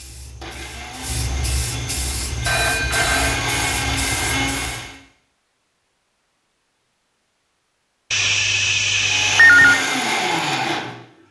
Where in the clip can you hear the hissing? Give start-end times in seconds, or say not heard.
0.0-4.9.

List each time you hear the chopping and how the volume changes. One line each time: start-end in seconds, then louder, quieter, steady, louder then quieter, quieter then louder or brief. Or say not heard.
not heard.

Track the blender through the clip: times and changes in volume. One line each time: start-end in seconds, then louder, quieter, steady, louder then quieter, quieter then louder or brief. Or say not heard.
0.0-5.0 louder
8.9-11.2 brief.